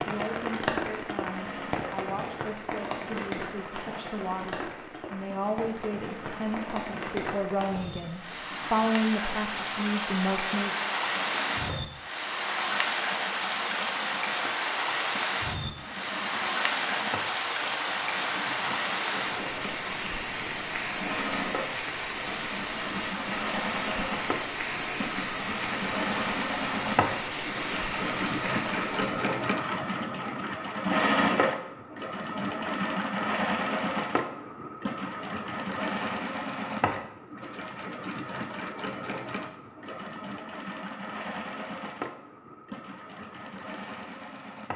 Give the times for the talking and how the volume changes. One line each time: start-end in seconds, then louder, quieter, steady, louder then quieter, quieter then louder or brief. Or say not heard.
0.0-10.8 louder.